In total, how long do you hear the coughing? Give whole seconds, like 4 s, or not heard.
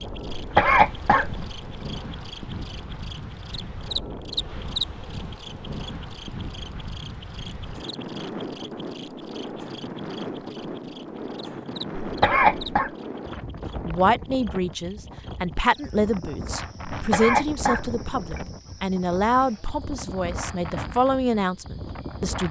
4 s.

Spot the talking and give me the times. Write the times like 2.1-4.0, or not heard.
13.8-22.4.